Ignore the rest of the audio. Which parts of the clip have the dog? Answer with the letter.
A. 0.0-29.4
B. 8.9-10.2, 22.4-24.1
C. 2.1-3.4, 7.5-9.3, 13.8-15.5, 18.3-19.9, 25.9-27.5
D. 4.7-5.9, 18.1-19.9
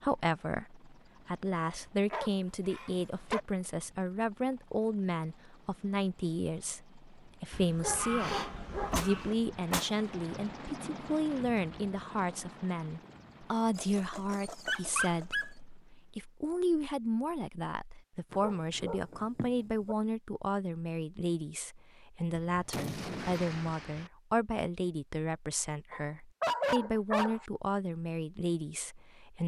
C.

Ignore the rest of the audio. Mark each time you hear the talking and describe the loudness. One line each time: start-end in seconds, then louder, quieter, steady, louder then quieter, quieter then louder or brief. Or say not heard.
0.0-29.4 steady.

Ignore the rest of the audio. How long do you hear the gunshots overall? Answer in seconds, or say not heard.
3 s.